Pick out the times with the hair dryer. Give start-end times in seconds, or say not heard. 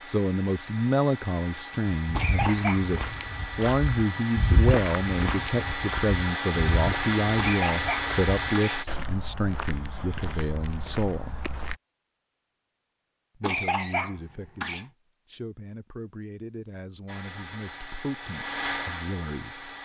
0.0-8.8, 17.1-19.8.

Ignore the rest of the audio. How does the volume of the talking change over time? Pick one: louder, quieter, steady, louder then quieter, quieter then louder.
quieter.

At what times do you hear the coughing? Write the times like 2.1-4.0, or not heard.
2.1-2.9, 7.4-8.8, 13.4-14.8.